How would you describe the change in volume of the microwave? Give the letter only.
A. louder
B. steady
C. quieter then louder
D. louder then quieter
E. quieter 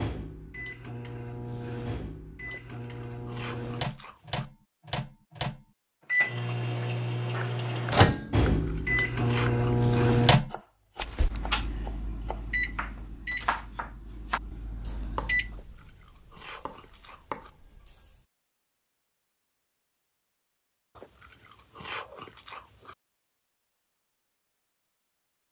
D.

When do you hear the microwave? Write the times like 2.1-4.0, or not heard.
0.0-15.6.